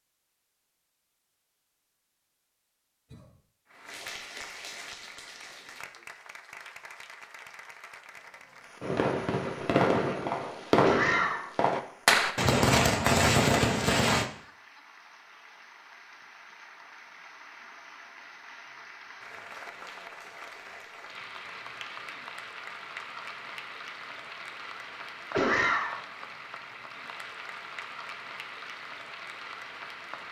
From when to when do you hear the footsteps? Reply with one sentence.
You can't hear the footsteps here.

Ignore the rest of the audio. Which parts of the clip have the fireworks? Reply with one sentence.
The fireworks can be heard from 8.8 to 14.2 s.